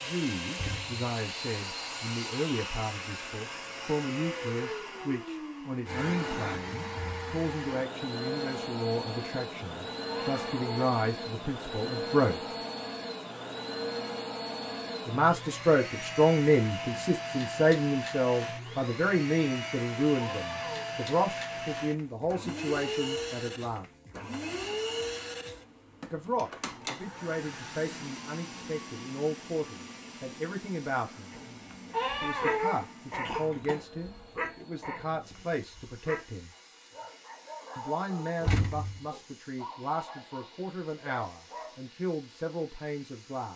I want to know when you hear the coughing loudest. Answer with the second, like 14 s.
33 s.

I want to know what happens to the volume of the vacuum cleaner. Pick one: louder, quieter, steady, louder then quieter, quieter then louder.
quieter.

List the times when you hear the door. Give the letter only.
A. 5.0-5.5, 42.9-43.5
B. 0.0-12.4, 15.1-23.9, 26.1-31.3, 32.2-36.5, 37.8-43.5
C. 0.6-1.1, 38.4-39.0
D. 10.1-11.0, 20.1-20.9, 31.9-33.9
C.